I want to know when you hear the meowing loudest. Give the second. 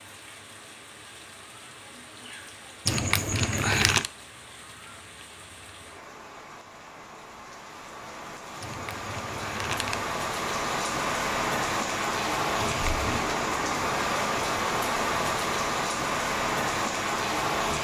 4 s.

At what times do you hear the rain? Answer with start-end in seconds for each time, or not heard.
0.0-17.7.